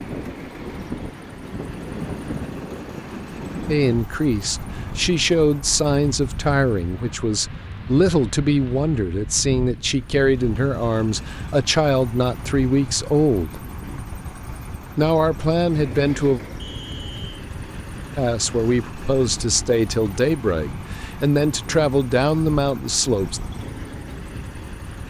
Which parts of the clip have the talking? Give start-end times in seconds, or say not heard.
3.6-13.7, 14.9-16.4, 18.1-23.4.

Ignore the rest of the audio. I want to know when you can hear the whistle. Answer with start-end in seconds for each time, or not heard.
16.6-17.4.